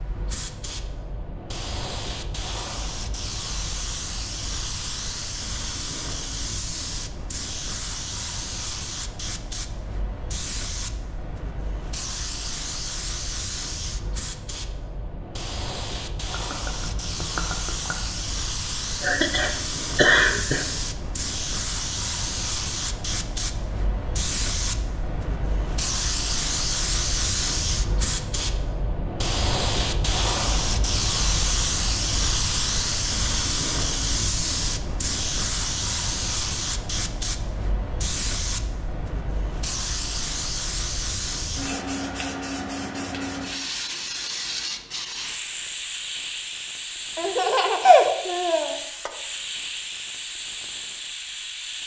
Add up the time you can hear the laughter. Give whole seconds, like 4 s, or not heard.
3 s.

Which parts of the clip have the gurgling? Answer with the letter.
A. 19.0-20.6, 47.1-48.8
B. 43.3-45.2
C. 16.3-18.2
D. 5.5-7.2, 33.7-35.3
C.